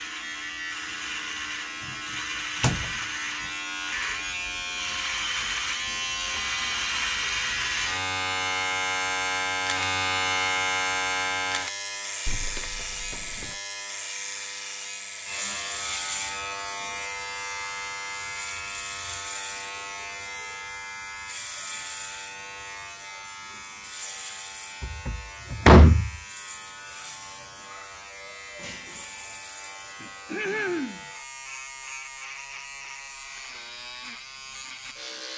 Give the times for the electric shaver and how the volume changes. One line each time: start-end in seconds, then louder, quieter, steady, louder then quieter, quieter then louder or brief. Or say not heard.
0.0-35.3 quieter.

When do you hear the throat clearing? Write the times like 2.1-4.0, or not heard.
30.0-31.1.